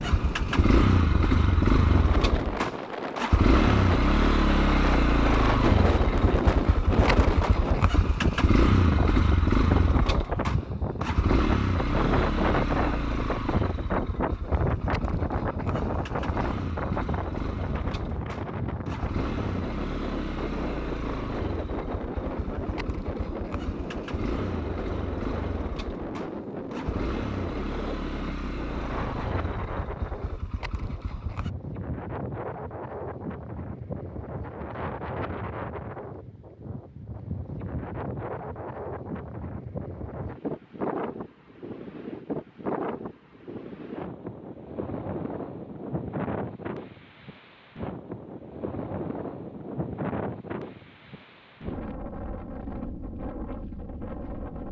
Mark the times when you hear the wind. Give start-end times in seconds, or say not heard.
0.0-54.6.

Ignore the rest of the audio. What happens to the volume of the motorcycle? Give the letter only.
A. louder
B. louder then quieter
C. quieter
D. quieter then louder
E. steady
C.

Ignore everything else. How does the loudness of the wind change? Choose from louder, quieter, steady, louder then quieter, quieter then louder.
quieter.